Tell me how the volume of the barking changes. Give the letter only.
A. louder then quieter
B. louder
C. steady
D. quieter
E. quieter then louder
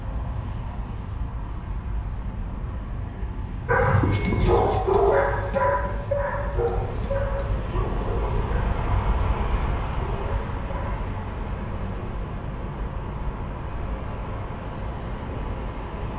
D.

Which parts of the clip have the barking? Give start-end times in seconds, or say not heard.
3.6-11.0.